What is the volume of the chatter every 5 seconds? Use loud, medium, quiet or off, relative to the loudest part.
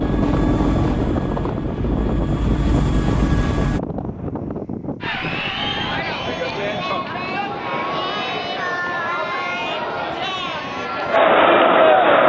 off, medium, loud.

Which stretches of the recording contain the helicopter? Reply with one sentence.
You can hear the helicopter from 0.0 to 3.8 s.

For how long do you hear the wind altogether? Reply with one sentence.
You can hear the wind for 12 seconds altogether.